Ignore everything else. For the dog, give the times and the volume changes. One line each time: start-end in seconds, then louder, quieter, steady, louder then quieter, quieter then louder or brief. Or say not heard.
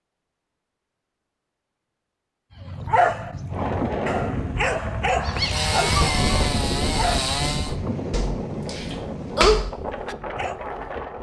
2.5-10.6 quieter then louder.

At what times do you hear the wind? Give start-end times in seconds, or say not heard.
3.5-11.1.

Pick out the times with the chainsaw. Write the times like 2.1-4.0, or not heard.
5.3-7.8.